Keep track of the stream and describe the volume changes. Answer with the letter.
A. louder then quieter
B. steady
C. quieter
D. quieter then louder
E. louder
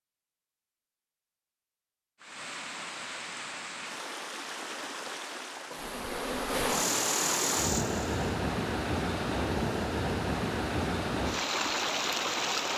E.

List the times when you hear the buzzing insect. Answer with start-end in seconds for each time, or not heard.
5.8-8.2.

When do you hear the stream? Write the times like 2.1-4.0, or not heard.
2.2-12.7.